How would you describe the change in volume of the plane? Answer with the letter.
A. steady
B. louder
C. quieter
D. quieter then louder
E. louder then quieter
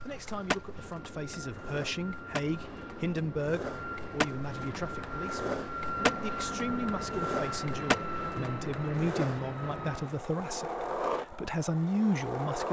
B.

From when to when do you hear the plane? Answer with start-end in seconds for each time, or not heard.
0.0-10.3.